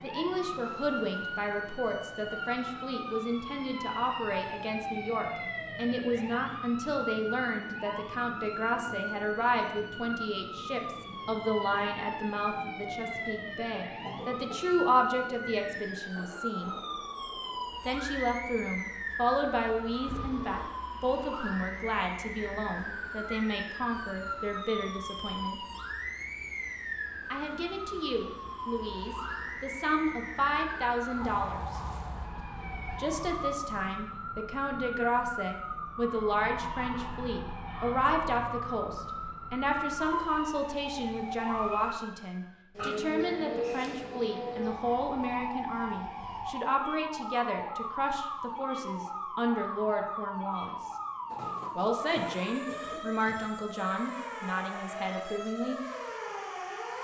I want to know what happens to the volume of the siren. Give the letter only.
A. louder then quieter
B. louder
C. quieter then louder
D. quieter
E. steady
E.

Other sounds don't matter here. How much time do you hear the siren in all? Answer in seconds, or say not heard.
57 s.